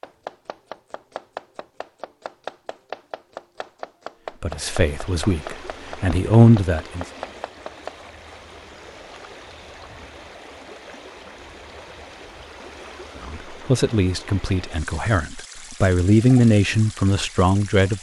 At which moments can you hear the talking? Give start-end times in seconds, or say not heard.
4.4-7.0, 13.2-17.9.